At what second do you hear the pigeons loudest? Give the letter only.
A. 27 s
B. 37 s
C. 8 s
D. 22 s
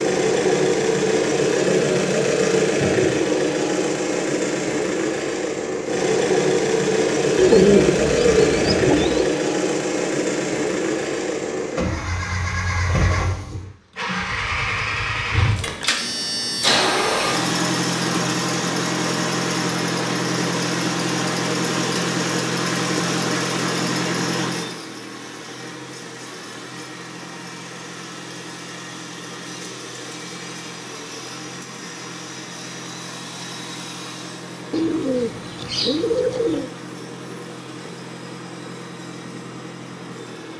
C.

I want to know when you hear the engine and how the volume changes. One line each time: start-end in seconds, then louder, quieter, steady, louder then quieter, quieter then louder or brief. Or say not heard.
0.0-40.5 quieter.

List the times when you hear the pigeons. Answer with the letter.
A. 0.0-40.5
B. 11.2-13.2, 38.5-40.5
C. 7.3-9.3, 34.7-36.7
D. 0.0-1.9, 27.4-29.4
C.